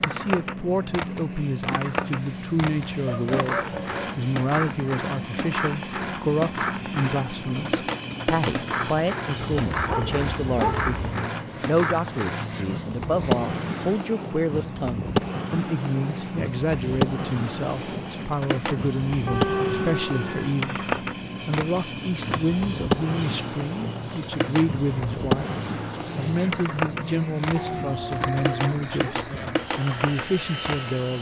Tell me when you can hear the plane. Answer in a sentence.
The plane can be heard from 0.0 to 31.1 s.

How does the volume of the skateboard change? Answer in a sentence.
The volume of the skateboard stays about the same.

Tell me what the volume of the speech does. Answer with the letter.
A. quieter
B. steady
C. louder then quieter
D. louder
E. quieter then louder
B.